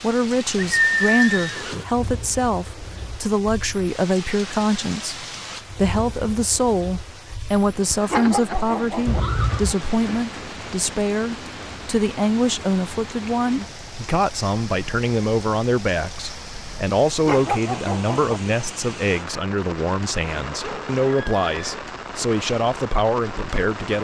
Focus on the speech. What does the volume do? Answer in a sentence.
The volume of the speech stays about the same.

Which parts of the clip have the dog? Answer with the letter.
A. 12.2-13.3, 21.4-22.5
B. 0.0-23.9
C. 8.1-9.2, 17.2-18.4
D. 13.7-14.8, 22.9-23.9
C.